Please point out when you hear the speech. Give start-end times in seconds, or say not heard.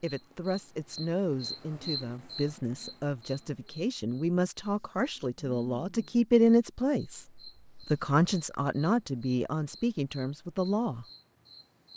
0.0-11.1.